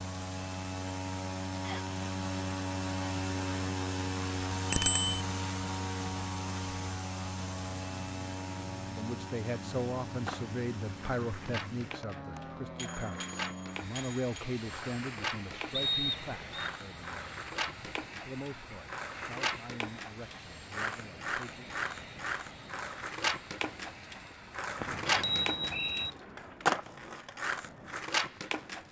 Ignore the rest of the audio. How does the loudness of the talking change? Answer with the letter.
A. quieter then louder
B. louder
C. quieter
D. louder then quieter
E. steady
C.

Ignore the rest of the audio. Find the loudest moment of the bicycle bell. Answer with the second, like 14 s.
5 s.